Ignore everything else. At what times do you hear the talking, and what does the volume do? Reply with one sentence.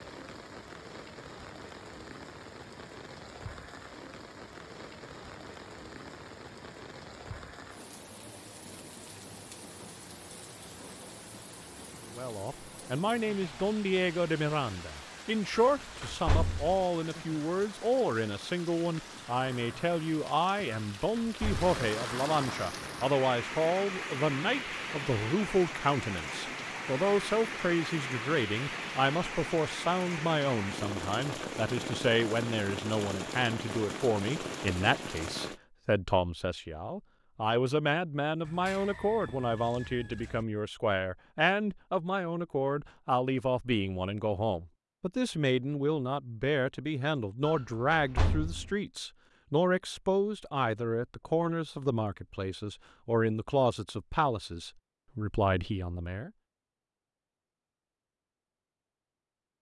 You can hear the talking from 12.2 to 56.3 s, at a steady volume.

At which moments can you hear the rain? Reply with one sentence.
You can hear the rain from 0.0 to 35.6 s.